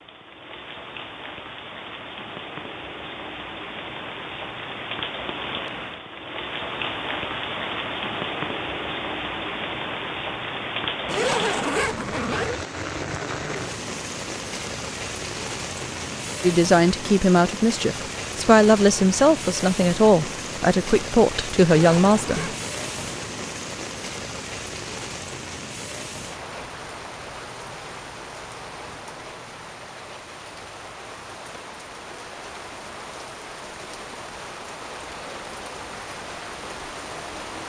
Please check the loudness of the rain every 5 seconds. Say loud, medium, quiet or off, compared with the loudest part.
medium, loud, loud, loud, loud, medium, medium, medium.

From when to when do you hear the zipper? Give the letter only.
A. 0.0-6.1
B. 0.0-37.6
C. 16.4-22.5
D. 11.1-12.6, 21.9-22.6
D.